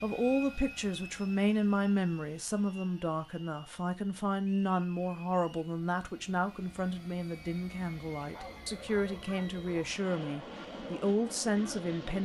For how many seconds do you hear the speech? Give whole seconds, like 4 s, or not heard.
12 s.